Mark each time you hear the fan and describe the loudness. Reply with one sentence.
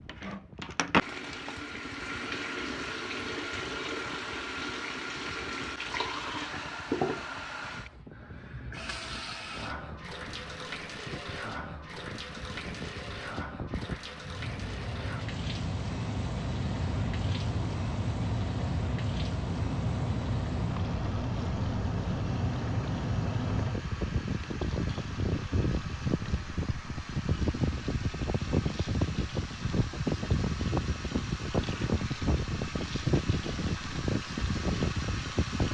You can hear the fan from 0.0 to 35.6 s, getting louder.